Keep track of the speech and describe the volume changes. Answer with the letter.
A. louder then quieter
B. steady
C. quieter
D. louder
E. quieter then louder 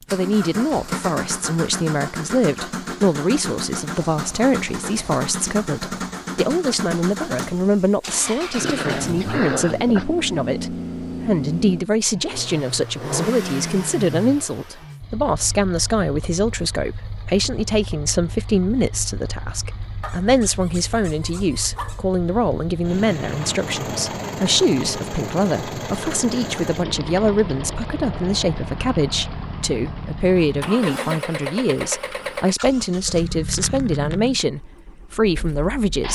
B.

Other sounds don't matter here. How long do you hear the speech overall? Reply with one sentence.
You can hear the speech for 36 seconds altogether.